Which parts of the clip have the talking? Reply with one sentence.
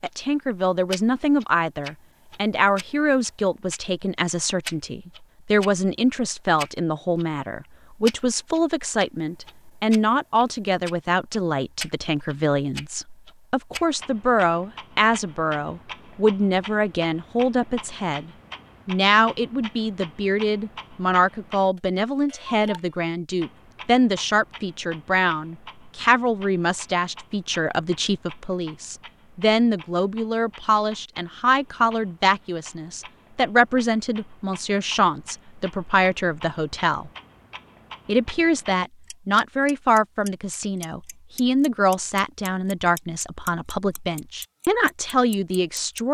The talking can be heard from 0.0 to 37.1 s and from 38.0 to 46.0 s.